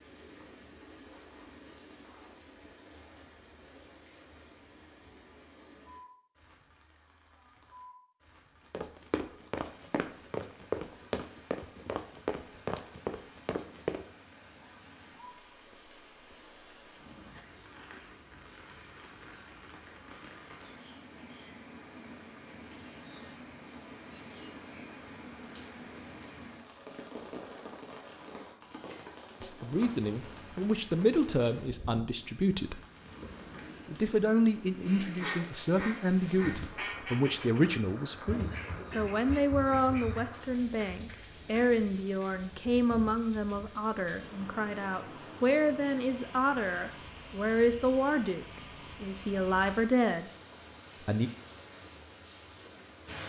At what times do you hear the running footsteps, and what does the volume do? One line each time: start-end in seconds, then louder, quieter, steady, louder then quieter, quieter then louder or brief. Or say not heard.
8.7-14.1 steady.